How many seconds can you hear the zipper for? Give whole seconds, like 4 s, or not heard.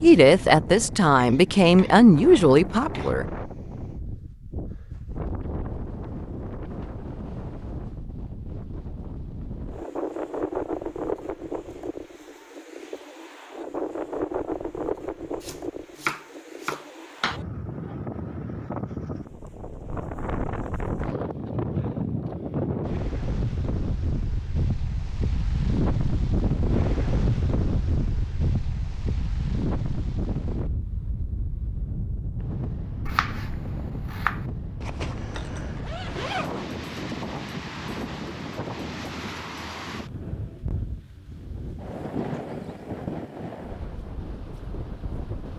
2 s.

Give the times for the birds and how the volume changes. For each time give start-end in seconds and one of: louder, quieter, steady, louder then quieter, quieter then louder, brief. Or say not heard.
not heard.